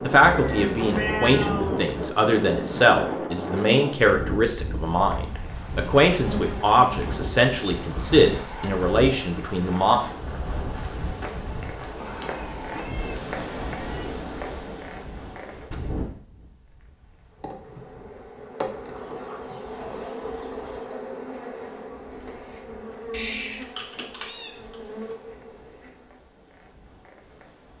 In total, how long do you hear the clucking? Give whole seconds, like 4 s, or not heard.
2 s.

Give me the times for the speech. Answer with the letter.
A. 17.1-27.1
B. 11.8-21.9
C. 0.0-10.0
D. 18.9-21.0
C.